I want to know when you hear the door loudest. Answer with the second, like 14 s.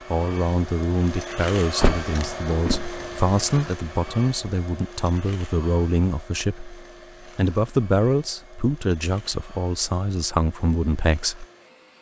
2 s.